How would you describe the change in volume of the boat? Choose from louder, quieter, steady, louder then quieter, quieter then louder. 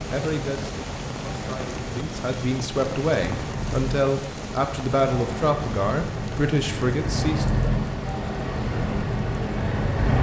louder.